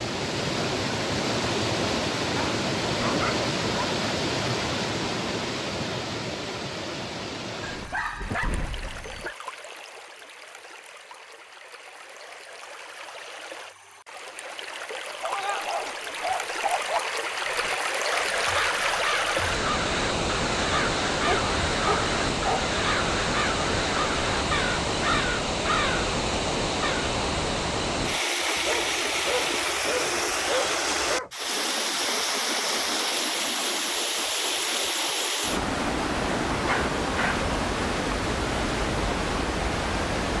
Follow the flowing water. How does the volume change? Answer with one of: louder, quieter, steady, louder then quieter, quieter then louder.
quieter then louder.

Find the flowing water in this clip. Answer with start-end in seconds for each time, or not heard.
0.0-40.3.